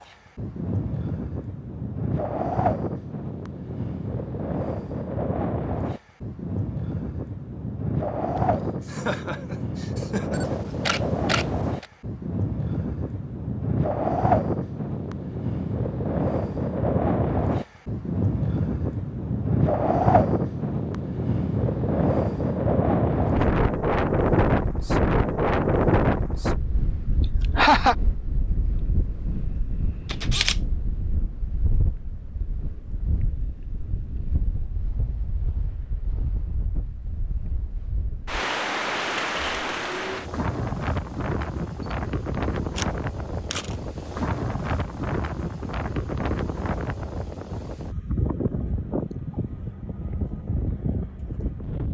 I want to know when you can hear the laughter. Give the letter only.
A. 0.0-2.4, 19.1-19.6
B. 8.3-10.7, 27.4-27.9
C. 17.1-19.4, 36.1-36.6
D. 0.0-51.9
B.